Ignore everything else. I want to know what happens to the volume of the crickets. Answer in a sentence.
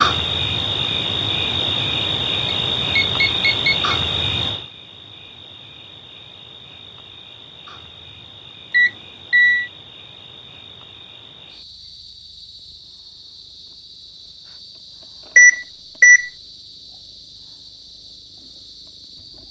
The loudness of the crickets goes down.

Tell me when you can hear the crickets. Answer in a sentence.
The crickets can be heard from 0.0 to 19.4 s.